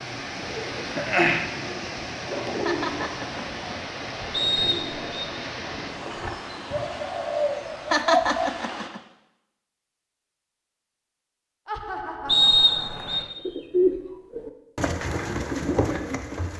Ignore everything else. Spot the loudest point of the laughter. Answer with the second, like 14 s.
8 s.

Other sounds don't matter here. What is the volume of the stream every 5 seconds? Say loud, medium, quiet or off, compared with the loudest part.
loud, loud, off, off.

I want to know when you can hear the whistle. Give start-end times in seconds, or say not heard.
4.3-5.3, 12.2-13.2.